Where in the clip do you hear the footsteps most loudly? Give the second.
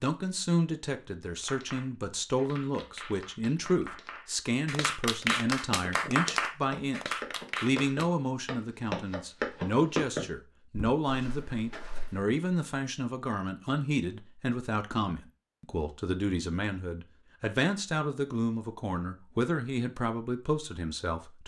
10 s.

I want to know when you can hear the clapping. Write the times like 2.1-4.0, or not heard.
1.4-8.1.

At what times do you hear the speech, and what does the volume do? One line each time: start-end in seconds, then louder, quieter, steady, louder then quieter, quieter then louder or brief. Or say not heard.
0.0-21.4 steady.